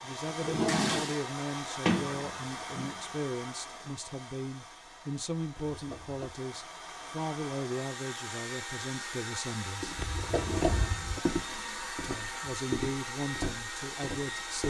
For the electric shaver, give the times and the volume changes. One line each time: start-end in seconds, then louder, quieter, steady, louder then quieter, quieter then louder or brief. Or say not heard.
not heard.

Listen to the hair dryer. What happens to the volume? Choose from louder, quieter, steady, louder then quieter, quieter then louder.
quieter then louder.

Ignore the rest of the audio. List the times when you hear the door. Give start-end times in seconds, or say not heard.
1.9-3.0, 5.5-6.3, 9.9-11.2.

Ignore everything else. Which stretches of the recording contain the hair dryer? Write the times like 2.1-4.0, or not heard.
0.0-14.6.